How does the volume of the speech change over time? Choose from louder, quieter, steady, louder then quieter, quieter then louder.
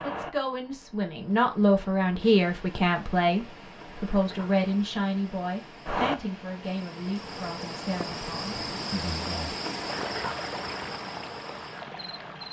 quieter.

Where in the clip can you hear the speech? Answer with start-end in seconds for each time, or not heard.
0.0-9.6.